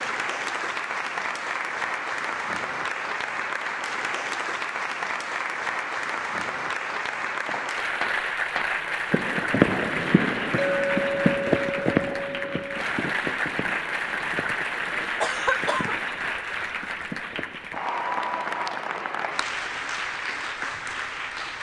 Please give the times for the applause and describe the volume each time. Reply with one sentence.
The applause can be heard from 0.0 to 21.5 s, at a steady volume.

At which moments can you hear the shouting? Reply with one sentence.
The shouting can't be heard in this clip.